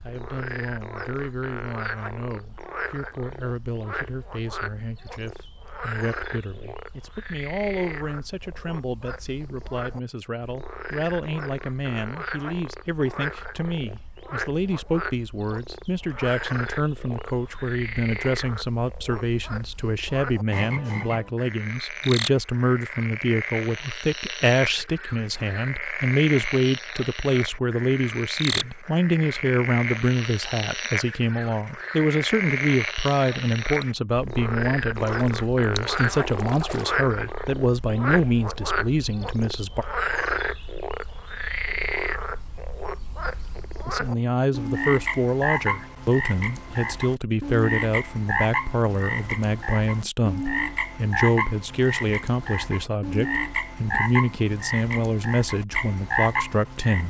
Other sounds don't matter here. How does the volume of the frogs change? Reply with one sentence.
The loudness of the frogs goes up.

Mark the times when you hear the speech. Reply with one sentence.
The speech can be heard from 0.0 to 39.9 s and from 43.9 to 57.0 s.